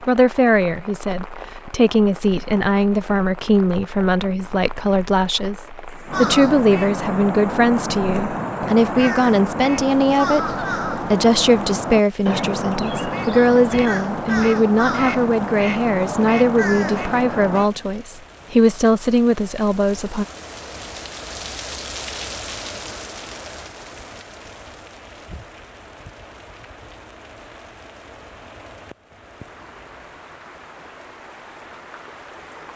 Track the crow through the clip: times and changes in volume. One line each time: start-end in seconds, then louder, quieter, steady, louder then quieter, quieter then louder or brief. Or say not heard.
6.0-17.7 steady.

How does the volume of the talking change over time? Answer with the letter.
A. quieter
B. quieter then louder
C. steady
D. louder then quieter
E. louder
C.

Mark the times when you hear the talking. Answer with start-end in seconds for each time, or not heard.
0.0-20.2.